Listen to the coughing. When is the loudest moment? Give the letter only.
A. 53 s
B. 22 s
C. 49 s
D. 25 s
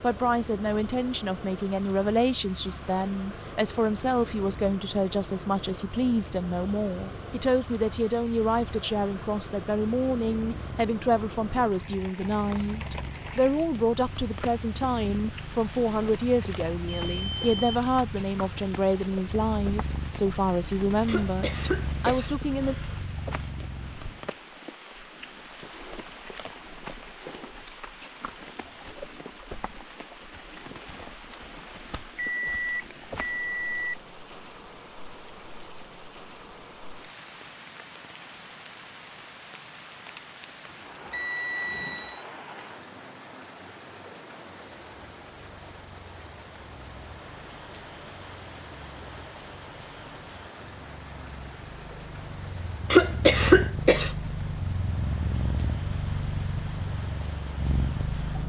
A.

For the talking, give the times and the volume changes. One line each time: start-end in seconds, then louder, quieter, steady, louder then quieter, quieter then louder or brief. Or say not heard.
0.0-22.8 steady.